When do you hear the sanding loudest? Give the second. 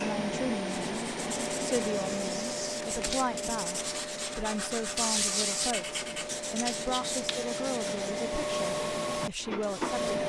5 s.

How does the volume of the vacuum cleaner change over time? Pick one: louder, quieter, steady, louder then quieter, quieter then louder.
quieter then louder.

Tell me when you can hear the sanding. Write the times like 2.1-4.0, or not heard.
0.8-10.2.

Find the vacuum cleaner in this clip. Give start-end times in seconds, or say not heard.
0.0-10.2.